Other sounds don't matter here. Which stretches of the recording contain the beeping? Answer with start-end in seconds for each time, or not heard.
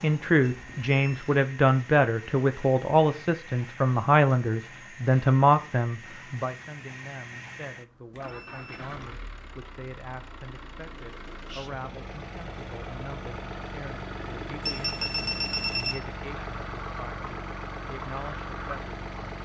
0.4-1.3, 8.1-9.0, 14.6-15.9.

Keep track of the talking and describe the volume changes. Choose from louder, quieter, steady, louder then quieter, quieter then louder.
quieter.